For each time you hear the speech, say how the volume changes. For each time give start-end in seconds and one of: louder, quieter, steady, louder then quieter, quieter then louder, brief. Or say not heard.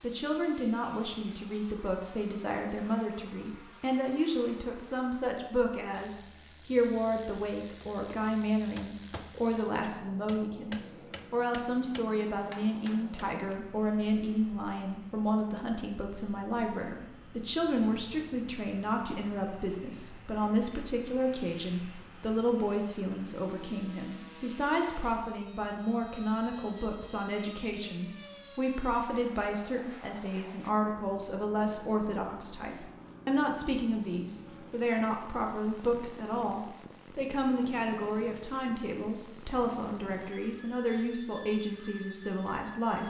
0.0-43.0 steady.